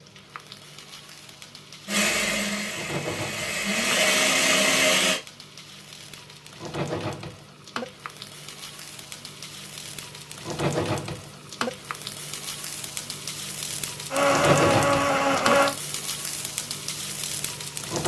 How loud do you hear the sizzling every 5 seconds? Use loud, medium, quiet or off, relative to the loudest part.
medium, medium, loud, loud.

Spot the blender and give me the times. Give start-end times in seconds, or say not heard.
1.9-5.2, 14.1-15.8.